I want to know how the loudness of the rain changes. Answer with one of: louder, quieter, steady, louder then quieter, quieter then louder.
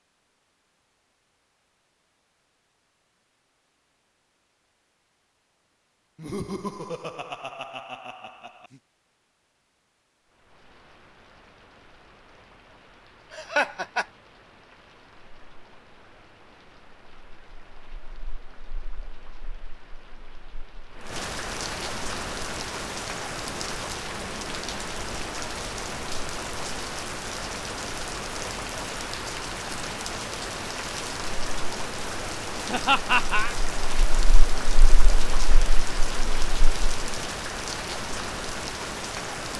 louder.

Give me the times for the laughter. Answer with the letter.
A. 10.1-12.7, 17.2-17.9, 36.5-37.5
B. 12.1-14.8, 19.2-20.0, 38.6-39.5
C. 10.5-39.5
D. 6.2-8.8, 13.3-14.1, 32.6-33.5
D.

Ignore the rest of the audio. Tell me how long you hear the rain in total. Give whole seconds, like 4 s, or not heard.
29 s.